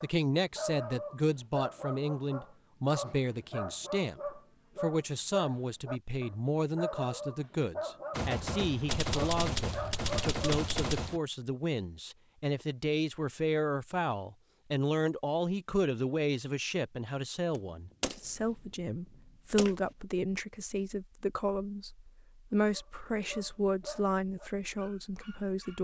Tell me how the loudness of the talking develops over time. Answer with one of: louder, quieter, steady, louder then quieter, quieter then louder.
steady.